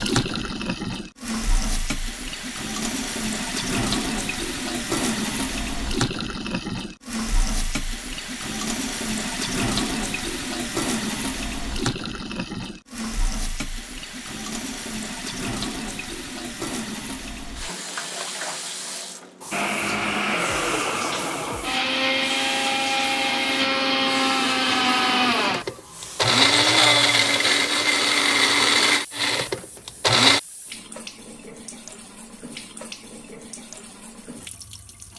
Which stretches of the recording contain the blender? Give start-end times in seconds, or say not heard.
19.5-30.4.